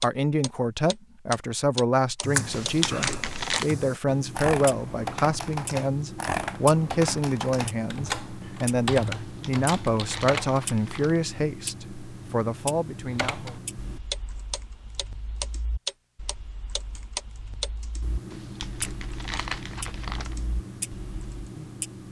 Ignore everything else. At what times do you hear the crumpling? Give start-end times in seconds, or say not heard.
2.5-3.7, 9.2-11.2, 18.3-20.4.